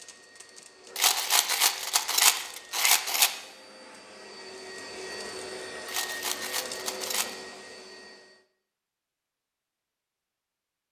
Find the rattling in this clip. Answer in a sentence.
You can hear the rattling from 0.9 to 3.3 s and from 5.8 to 7.3 s.